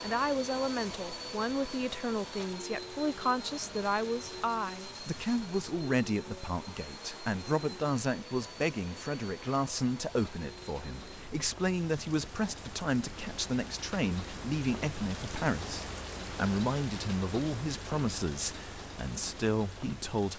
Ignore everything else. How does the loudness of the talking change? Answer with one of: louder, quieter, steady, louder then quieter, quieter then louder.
steady.